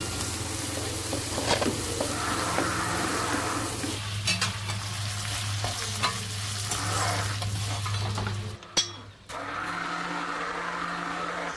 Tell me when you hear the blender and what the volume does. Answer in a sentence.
You can hear the blender briefly from 2.0 to 3.8 s; and from 6.6 to 11.5 s, getting quieter then louder.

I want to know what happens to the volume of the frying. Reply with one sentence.
The volume of the frying goes down.